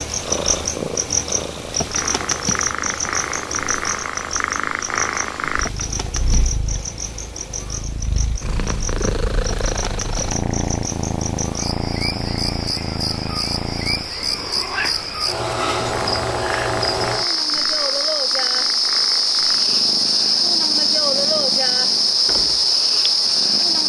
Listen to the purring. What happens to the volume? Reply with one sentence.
The volume of the purring goes down.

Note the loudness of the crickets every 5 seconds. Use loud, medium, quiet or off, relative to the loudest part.
medium, quiet, medium, loud, loud.